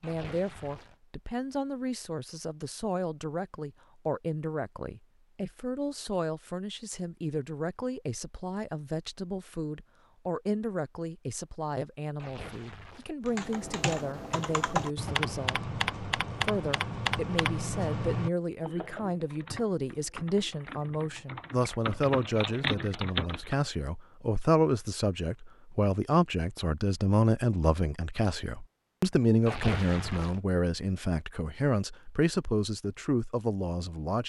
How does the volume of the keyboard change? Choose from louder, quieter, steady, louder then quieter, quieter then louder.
quieter then louder.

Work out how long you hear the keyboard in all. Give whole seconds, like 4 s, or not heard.
10 s.